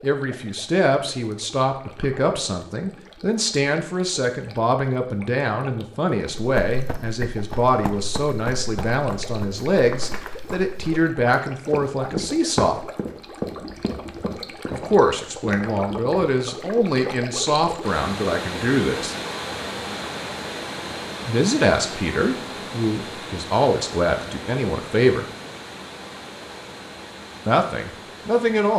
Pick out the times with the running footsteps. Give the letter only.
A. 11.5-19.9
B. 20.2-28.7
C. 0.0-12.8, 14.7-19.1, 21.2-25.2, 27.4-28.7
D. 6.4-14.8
D.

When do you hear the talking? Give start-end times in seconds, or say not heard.
0.0-12.8, 14.7-19.1, 21.2-25.2, 27.4-28.7.